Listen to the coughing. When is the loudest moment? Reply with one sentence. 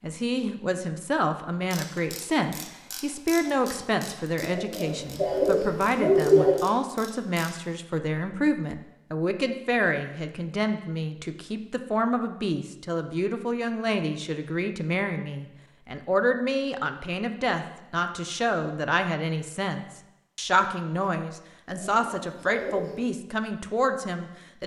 The loudest moment of the coughing is at 6 seconds.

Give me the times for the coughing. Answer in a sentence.
The coughing can be heard from 4.4 to 6.7 s and from 21.6 to 23.0 s.